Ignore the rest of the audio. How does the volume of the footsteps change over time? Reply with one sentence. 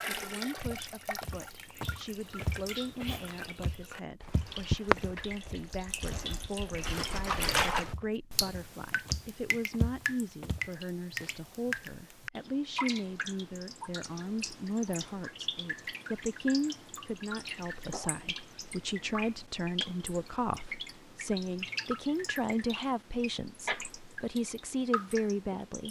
The volume of the footsteps goes down, then up.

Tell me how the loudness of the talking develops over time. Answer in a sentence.
The volume of the talking goes up.